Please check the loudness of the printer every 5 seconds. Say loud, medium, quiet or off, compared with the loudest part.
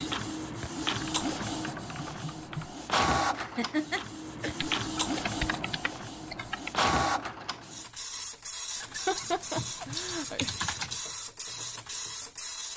loud, loud, medium.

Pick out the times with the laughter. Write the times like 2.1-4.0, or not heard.
3.4-4.6, 8.8-10.5.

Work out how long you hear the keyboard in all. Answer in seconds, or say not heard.
6 s.